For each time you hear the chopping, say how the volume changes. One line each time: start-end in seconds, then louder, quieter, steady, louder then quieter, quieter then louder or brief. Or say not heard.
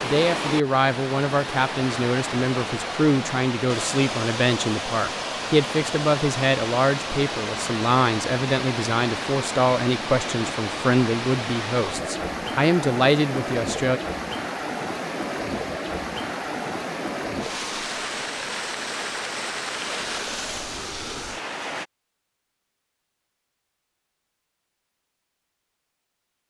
not heard.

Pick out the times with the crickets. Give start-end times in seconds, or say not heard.
not heard.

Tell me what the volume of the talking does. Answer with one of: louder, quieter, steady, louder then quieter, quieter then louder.
steady.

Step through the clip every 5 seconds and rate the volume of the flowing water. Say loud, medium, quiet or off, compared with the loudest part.
loud, loud, loud, loud, loud, off.